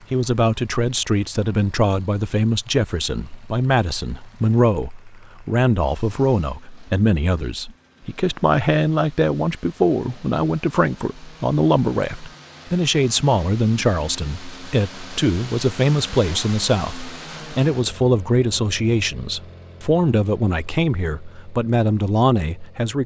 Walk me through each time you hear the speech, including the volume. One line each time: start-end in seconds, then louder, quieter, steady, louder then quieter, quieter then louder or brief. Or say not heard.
0.1-23.0 steady.